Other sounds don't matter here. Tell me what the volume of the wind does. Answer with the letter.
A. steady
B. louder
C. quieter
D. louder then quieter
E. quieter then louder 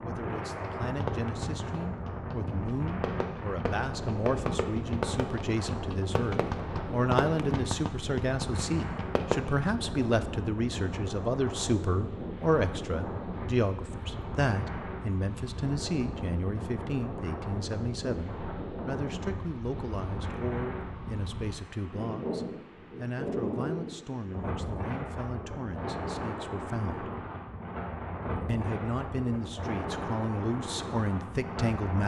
A.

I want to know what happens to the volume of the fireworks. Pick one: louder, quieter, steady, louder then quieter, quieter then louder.
louder.